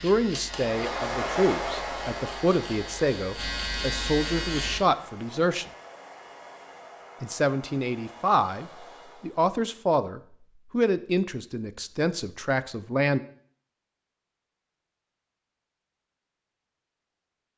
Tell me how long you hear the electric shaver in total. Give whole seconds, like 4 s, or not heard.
5 s.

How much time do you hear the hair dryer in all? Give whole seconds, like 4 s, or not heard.
9 s.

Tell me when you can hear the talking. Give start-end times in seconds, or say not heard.
0.0-5.7, 7.2-13.2.